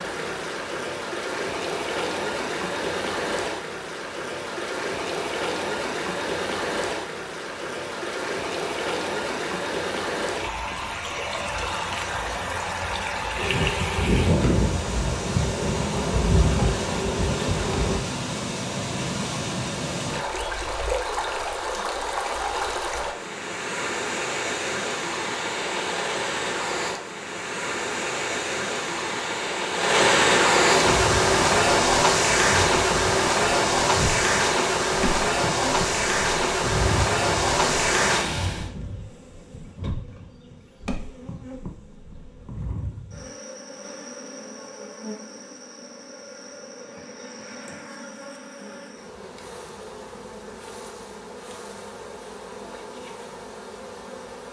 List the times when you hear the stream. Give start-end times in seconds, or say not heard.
0.0-38.7.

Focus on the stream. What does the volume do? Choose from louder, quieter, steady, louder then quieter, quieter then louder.
louder.